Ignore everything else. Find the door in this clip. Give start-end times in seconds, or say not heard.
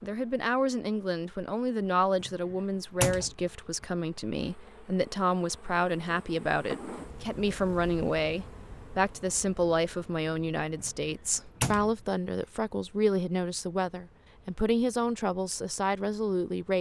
2.2-3.3, 10.8-11.9.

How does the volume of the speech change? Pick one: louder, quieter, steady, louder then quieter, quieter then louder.
steady.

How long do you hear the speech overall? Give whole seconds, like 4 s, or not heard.
17 s.